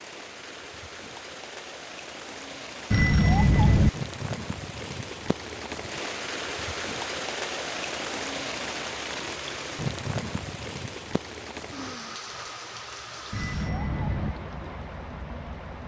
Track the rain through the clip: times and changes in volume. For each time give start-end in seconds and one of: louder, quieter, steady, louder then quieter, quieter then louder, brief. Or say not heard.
0.0-15.8 louder then quieter.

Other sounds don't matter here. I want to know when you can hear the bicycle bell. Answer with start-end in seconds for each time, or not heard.
2.9-3.9, 13.3-14.3.